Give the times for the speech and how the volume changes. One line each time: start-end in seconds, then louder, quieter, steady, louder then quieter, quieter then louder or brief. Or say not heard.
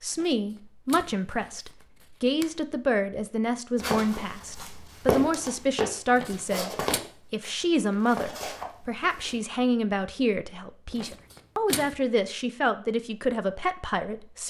0.0-14.4 steady.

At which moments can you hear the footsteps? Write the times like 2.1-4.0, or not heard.
3.8-9.3.